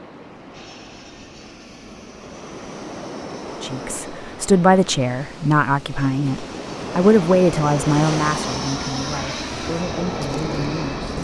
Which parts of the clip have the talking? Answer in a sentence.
The talking can be heard from 3.6 to 11.1 s.